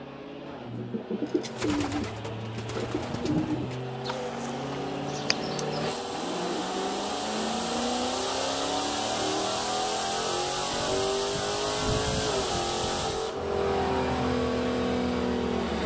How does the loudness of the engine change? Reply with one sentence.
The loudness of the engine goes up.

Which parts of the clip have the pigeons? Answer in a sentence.
The pigeons can be heard from 0.5 to 7.9 s.